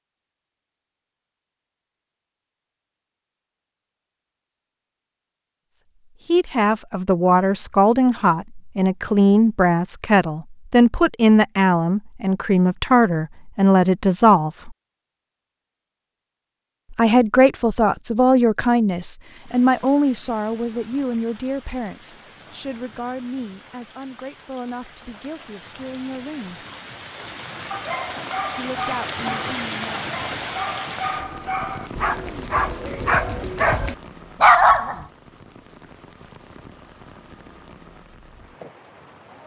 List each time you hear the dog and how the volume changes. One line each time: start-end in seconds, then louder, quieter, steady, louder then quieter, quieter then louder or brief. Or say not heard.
27.7-35.0 louder.